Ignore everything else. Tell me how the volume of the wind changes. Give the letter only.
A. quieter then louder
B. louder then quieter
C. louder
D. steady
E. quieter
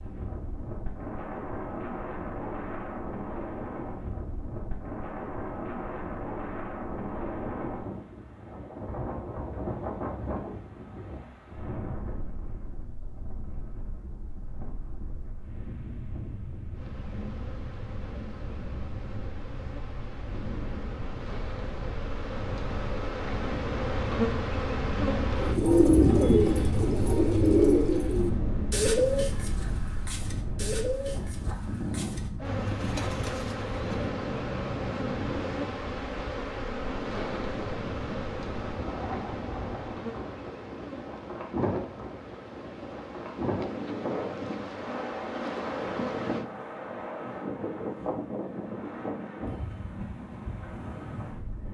A.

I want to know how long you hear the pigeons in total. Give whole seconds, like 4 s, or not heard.
9 s.